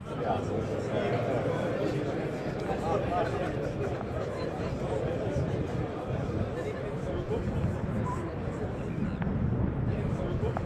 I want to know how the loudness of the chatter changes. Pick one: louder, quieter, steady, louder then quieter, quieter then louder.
quieter.